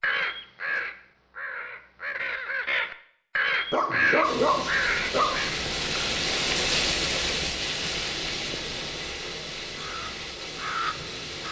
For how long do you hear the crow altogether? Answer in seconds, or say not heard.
7 s.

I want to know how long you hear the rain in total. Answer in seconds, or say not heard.
7 s.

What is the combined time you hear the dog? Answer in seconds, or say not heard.
2 s.